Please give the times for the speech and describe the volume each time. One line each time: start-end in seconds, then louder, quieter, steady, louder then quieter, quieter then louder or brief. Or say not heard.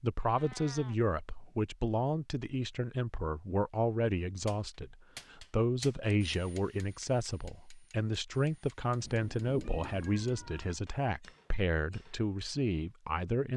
0.0-13.5 steady.